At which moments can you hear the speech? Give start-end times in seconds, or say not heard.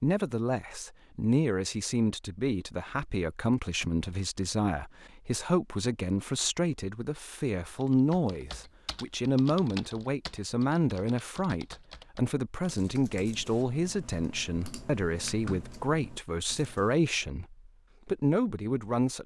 0.0-19.2.